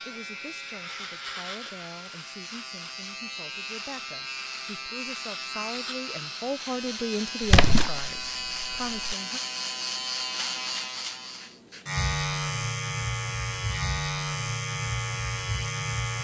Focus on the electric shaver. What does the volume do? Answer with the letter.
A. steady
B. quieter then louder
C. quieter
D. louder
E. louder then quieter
D.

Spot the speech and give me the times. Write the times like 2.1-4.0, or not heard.
0.0-9.4.